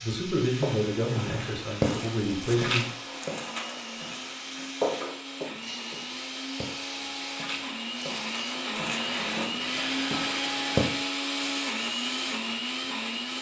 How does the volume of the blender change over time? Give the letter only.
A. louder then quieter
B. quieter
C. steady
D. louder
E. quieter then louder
D.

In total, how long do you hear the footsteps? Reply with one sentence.
You can hear the footsteps for 10 seconds altogether.